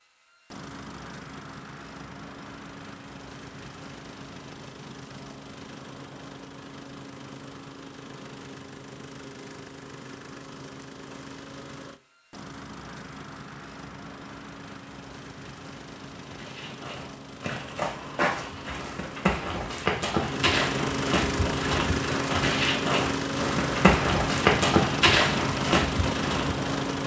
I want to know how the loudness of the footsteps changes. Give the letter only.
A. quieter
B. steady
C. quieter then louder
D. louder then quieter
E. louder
E.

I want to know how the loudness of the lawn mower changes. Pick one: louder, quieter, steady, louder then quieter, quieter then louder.
louder.